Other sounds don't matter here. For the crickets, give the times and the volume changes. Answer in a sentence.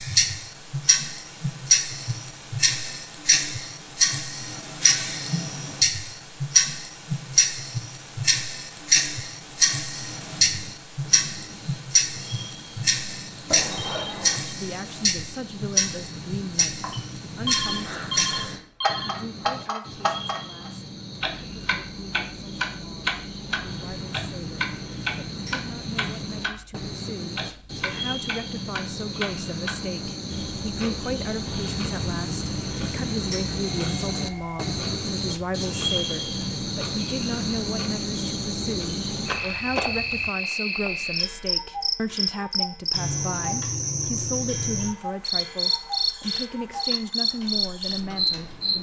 You can hear the crickets from 10.1 to 48.7 s, getting louder.